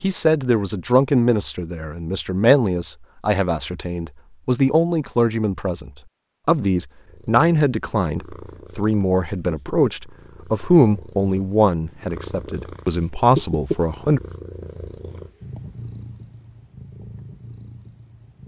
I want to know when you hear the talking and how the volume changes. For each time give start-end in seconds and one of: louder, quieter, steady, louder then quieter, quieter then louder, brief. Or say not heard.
0.0-14.2 steady.